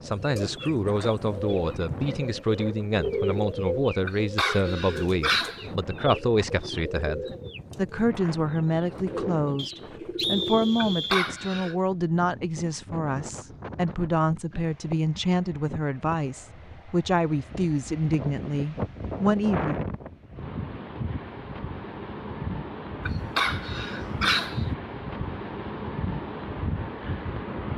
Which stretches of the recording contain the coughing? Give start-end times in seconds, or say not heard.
4.0-5.7, 10.8-11.8, 23.1-24.6.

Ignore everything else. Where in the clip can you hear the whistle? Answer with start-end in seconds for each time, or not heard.
9.6-11.2.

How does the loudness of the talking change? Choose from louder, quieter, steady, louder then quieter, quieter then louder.
steady.